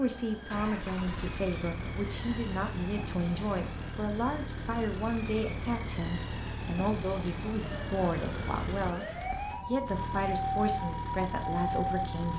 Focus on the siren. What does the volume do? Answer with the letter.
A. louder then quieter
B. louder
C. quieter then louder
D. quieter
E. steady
B.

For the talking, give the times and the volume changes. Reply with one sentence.
You can hear the talking from 0.0 to 12.3 s, at a steady volume.